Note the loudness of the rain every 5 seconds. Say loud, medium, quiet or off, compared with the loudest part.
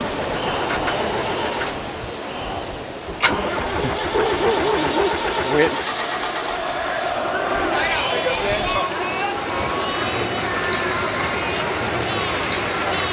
medium, medium, loud.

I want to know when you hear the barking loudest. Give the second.
5 s.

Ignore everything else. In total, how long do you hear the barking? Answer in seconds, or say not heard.
2 s.